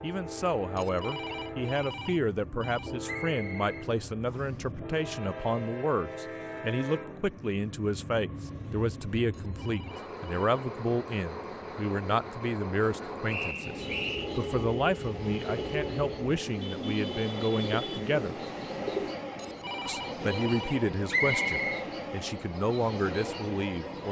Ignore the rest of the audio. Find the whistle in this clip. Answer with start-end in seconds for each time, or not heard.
3.0-4.6, 13.2-14.3, 21.1-21.8.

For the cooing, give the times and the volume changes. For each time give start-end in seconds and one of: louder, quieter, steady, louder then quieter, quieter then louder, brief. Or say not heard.
13.8-19.1 steady.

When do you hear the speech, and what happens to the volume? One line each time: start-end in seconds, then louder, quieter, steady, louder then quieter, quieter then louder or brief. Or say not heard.
0.0-18.4 steady
19.9-24.0 quieter then louder.